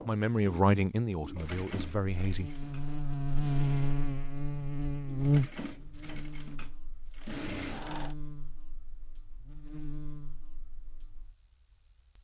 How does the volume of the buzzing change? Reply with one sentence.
The loudness of the buzzing goes down.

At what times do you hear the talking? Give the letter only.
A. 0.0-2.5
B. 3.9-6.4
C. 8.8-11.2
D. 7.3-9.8
A.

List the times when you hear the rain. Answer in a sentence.
You can't hear the rain here.